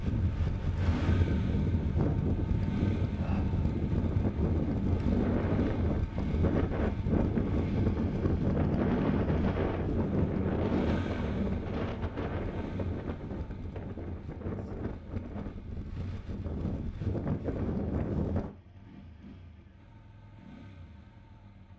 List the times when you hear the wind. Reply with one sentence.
You can hear the wind from 0.0 to 18.6 s.